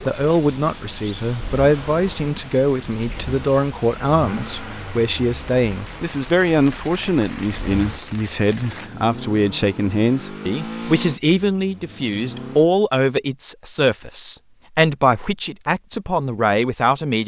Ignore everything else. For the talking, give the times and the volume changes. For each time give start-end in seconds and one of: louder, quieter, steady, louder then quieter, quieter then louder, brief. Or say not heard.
0.0-17.2 steady.